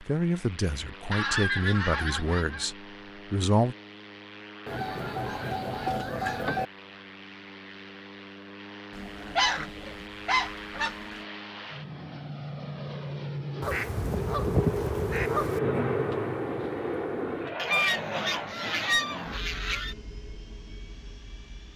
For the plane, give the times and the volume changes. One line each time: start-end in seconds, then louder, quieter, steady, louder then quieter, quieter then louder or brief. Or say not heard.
0.0-21.7 louder then quieter.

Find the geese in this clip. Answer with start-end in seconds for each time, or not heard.
1.1-2.7, 4.7-6.7, 8.9-10.9, 13.6-15.6, 17.6-19.9.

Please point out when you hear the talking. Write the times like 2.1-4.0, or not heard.
0.0-3.8.